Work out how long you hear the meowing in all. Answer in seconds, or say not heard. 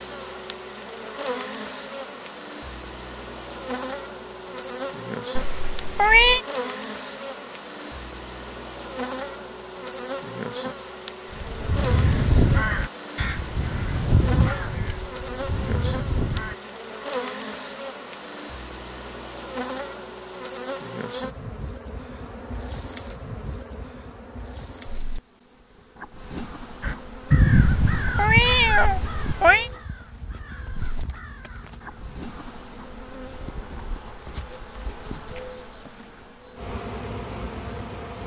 3 s.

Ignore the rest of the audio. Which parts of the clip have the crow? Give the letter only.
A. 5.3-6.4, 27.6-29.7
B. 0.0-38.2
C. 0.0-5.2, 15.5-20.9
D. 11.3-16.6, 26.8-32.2
D.